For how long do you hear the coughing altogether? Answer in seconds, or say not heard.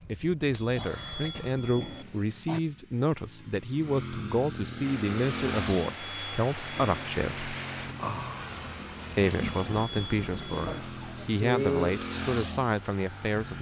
3 s.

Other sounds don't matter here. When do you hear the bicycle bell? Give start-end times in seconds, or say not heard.
0.5-2.0, 5.7-7.0, 9.3-10.8.